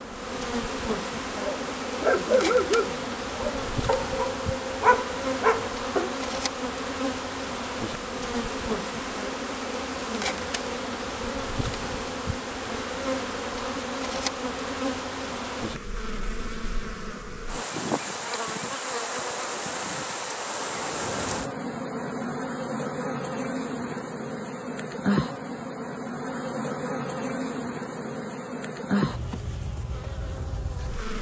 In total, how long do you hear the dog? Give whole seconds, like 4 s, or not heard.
5 s.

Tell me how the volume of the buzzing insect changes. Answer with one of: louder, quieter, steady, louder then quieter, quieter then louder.
steady.